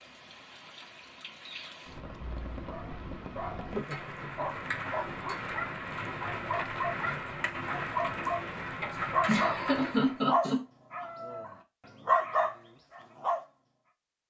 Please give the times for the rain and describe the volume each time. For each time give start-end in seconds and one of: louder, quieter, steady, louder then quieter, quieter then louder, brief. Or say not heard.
0.0-10.2 louder.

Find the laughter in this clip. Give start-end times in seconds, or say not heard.
3.7-4.5, 9.2-11.1.